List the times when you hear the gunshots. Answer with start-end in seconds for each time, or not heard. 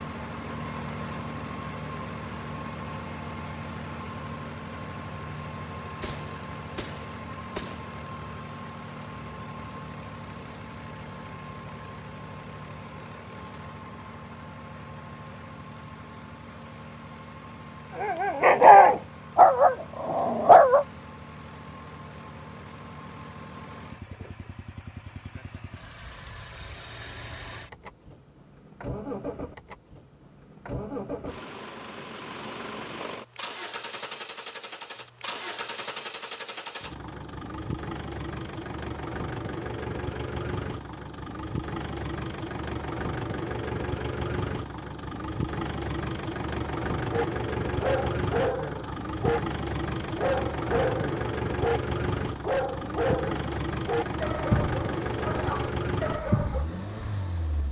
6.0-7.9.